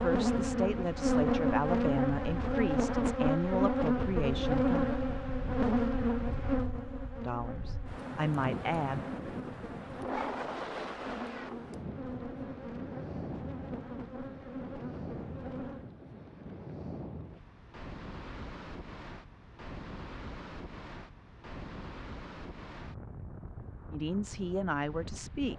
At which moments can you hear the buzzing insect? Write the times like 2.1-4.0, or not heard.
0.0-15.9.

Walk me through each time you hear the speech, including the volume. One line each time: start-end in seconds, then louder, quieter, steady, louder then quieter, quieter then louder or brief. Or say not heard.
0.0-4.8 steady
7.2-9.1 brief
23.9-25.5 brief.